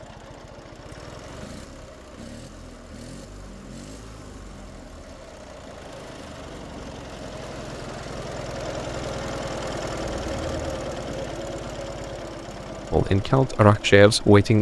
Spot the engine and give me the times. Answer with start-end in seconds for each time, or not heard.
0.0-14.5.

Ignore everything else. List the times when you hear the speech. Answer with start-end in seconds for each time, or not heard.
12.9-14.5.